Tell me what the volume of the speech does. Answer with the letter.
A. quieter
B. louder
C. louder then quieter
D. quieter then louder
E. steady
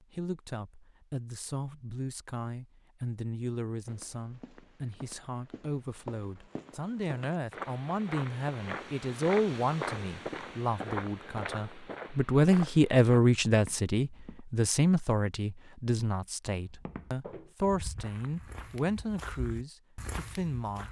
C.